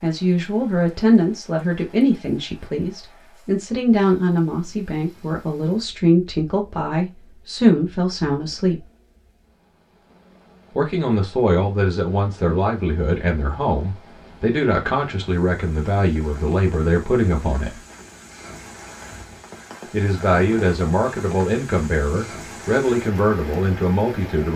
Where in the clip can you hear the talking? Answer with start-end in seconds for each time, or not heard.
0.0-8.8, 10.8-17.8, 19.9-24.5.